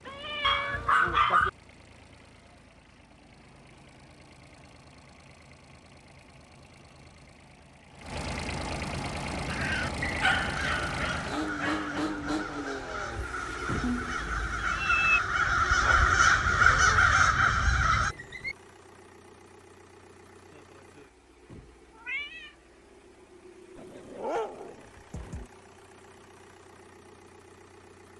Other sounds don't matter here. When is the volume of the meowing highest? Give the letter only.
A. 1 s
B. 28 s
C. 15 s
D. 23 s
C.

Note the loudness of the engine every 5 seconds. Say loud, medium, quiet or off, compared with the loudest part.
quiet, loud, loud, quiet, quiet, quiet.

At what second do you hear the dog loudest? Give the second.
1 s.